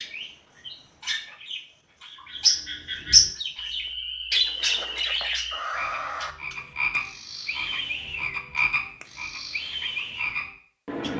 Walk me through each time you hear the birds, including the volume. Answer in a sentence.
You can hear the birds from 0.0 to 11.1 s, getting louder then quieter.